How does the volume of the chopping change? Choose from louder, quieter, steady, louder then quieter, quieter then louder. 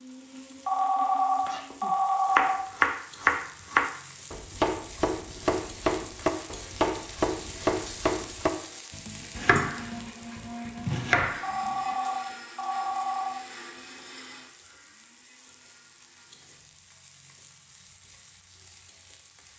quieter.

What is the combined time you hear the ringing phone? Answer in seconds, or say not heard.
4 s.